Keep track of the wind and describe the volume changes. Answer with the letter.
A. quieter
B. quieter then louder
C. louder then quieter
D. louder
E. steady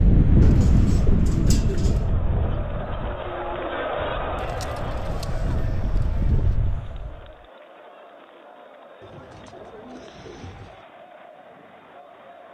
B.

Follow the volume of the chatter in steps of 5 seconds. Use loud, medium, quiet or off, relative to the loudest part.
loud, medium, quiet.